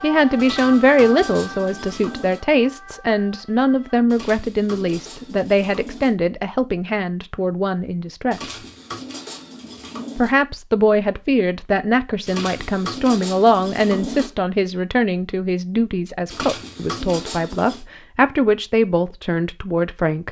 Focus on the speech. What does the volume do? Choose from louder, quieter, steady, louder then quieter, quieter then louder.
steady.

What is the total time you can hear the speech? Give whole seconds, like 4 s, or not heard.
19 s.